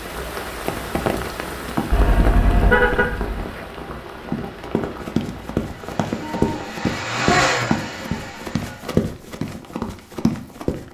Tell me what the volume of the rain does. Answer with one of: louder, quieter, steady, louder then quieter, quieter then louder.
quieter.